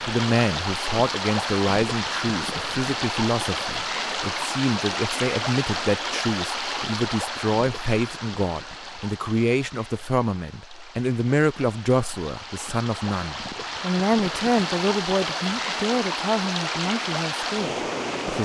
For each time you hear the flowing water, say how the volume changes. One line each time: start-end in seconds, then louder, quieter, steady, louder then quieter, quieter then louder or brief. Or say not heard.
0.0-18.4 quieter then louder.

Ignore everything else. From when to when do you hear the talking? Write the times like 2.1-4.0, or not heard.
0.1-18.4.